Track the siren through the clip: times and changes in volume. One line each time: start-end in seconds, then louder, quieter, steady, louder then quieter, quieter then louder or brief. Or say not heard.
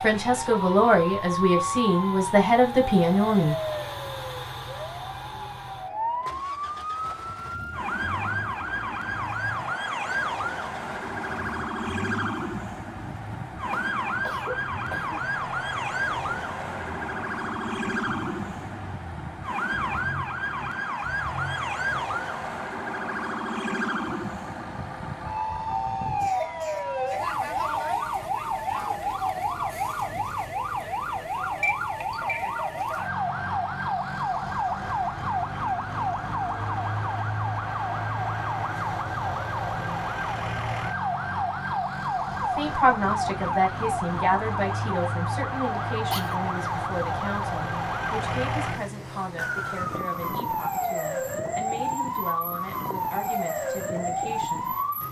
0.0-55.0 steady.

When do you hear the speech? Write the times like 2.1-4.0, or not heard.
0.0-3.5, 42.4-54.8.